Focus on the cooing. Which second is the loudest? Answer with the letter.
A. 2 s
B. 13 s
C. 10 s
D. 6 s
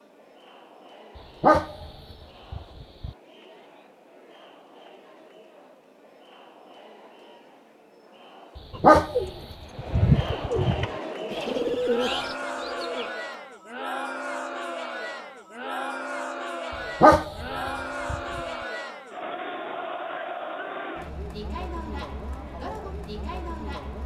C.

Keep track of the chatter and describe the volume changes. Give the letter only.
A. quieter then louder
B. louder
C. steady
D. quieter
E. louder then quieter
B.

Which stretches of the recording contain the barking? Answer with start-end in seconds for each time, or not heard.
1.4-3.1, 8.8-10.2, 17.0-18.4.